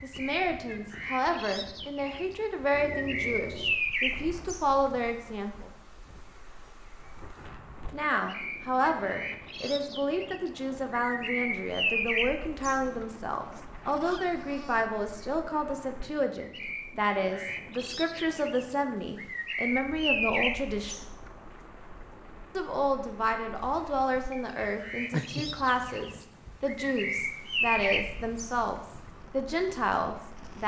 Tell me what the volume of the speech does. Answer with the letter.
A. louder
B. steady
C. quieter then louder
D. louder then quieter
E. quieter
B.